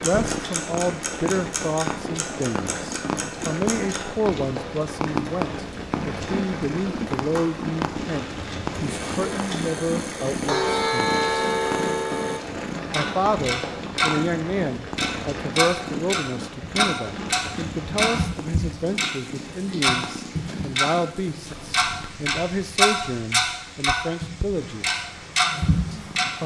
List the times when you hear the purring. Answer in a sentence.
The purring can be heard from 0.0 to 26.4 s.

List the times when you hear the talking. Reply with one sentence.
The talking can be heard from 0.0 to 11.2 s, from 12.9 to 25.0 s and from 25.9 to 26.4 s.